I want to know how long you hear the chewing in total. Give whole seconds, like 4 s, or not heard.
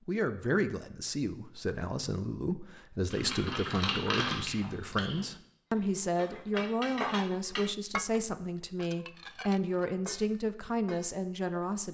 2 s.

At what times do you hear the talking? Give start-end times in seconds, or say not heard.
0.1-11.8.